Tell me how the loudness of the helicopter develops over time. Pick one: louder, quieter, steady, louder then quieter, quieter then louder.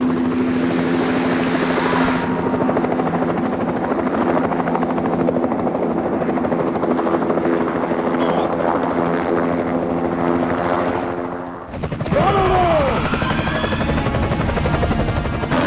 steady.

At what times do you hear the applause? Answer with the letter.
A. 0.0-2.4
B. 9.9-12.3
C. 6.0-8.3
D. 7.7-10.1
A.